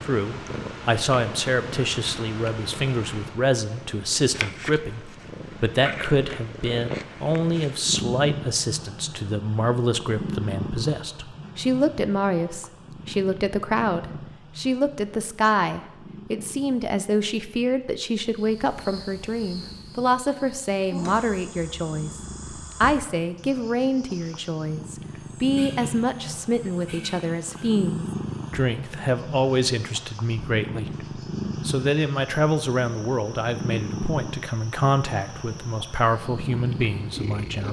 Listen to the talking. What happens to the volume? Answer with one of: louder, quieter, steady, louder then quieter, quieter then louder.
steady.